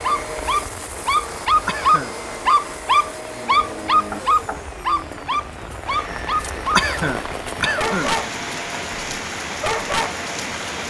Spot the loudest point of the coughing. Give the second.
7 s.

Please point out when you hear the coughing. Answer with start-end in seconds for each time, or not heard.
1.6-2.1, 6.8-8.2.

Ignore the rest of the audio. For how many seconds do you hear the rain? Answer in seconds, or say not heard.
11 s.